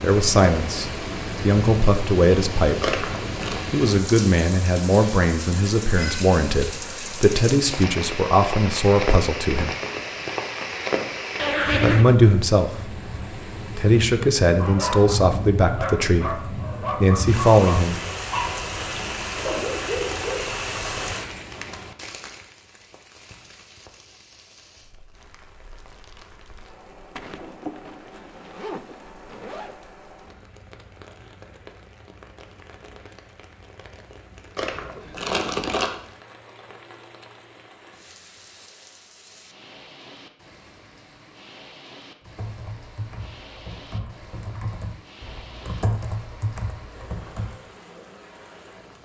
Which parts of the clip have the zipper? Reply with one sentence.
The zipper can be heard from 11.3 to 12.2 s and from 27.1 to 29.8 s.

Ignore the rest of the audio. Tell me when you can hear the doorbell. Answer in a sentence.
You can't hear the doorbell here.